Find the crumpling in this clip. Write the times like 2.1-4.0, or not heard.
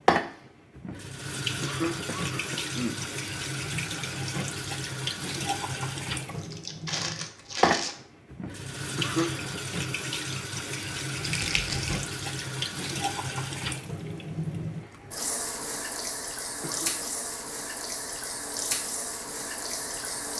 6.2-8.0, 11.2-12.0.